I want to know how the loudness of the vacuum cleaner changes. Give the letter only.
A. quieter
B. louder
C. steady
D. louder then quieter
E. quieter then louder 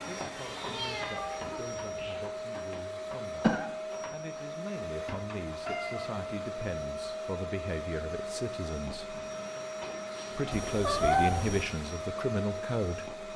C.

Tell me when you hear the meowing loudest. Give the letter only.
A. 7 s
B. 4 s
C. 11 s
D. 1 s
C.